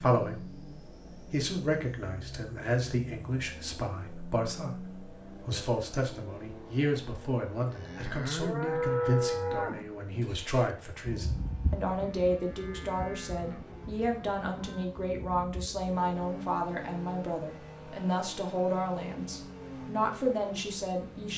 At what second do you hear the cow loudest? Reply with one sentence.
The loudest moment of the cow is at 9 seconds.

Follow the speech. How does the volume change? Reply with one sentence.
The loudness of the speech stays about the same.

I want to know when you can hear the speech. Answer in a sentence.
The speech can be heard from 0.0 to 21.3 s.